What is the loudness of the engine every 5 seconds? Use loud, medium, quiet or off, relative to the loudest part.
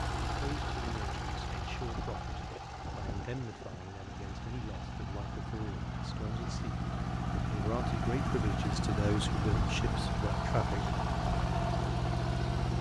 medium, loud, loud.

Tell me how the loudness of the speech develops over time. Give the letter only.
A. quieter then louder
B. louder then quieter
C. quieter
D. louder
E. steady
D.